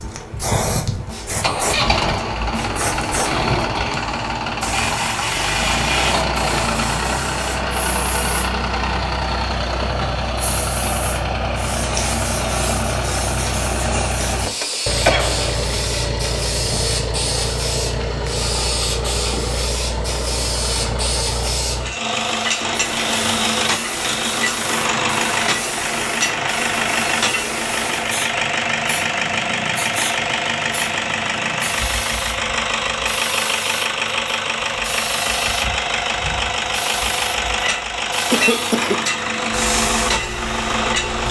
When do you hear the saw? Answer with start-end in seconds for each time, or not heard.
not heard.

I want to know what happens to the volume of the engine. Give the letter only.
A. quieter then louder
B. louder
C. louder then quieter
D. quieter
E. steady
E.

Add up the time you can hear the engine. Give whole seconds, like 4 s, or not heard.
41 s.